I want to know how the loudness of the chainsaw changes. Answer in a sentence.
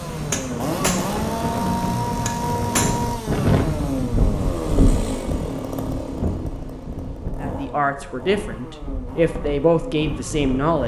The volume of the chainsaw goes down.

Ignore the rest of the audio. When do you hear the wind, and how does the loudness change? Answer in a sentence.
The wind can be heard from 0.2 to 10.8 s, getting louder then quieter.